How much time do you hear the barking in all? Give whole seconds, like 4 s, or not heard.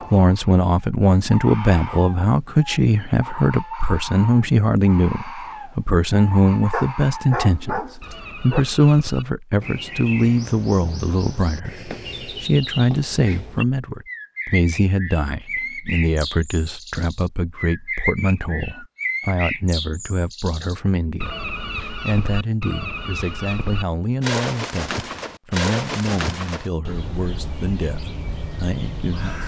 2 s.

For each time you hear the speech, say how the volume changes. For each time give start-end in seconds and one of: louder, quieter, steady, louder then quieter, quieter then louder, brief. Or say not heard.
0.1-29.4 quieter.